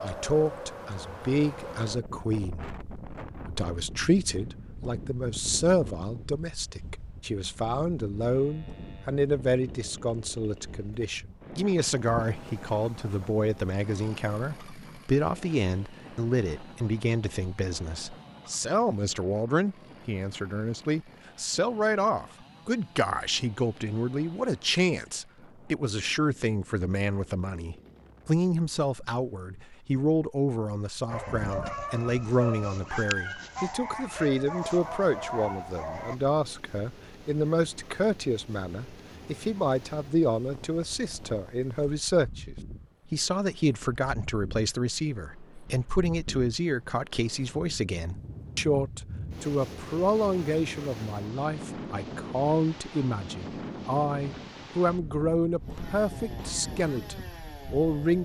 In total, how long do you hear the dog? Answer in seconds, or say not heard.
5 s.